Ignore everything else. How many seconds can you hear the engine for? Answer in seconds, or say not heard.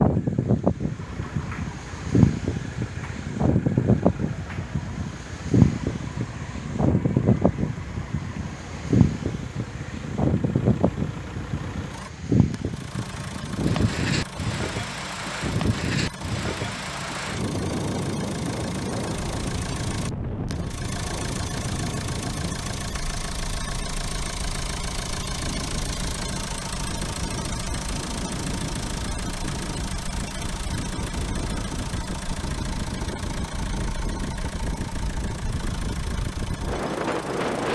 38 s.